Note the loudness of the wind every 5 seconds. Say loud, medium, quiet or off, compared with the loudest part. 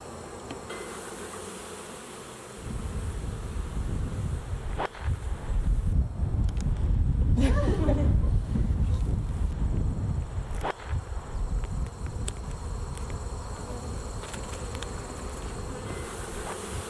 medium, loud, medium, medium.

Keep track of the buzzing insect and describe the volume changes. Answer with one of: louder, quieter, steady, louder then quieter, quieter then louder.
quieter then louder.